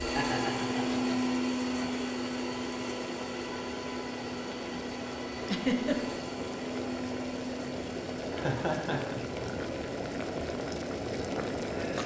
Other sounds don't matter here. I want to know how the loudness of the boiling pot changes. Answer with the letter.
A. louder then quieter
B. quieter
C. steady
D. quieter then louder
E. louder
E.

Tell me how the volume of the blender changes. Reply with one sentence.
The loudness of the blender goes down.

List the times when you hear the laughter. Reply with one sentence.
The laughter can be heard from 0.1 to 1.9 s, from 5.4 to 6.2 s and from 8.3 to 9.5 s.